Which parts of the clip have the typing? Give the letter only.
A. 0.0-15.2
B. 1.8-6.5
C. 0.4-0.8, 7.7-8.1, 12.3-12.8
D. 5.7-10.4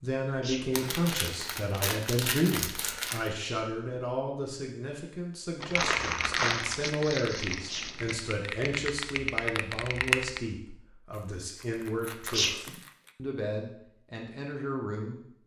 D.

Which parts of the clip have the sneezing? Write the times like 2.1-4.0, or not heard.
0.4-0.8, 7.7-8.1, 12.3-12.8.